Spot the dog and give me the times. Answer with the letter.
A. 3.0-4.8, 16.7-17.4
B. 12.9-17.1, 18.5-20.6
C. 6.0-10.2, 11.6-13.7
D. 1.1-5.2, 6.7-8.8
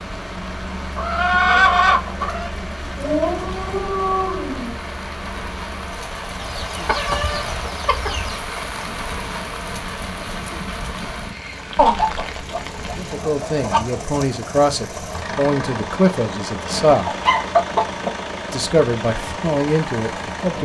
A.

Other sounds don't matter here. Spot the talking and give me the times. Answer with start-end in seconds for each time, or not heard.
12.9-17.1, 18.5-20.6.